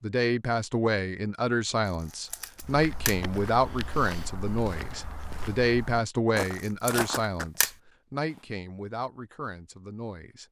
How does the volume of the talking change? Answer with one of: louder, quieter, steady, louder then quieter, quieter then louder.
quieter.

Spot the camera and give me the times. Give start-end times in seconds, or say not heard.
2.0-3.1, 6.6-7.7.